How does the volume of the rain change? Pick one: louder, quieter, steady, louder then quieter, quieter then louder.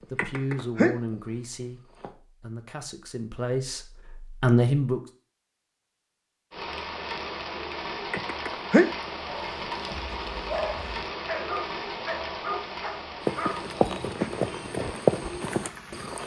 quieter.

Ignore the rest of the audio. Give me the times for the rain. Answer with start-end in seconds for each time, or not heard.
6.5-16.2.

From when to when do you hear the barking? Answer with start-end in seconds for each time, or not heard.
9.2-14.8.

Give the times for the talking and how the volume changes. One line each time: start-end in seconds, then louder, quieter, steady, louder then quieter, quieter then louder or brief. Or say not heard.
0.1-5.0 quieter then louder.